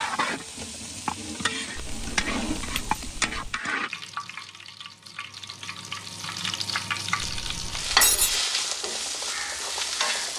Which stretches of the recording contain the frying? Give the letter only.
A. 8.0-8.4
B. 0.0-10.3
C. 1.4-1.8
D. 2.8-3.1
B.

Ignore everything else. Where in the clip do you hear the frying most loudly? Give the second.
8 s.